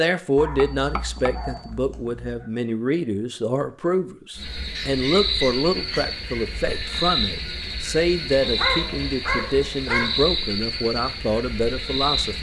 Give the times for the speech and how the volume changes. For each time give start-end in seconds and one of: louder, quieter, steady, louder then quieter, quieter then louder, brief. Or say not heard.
0.0-12.3 steady.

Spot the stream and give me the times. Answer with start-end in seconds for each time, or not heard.
not heard.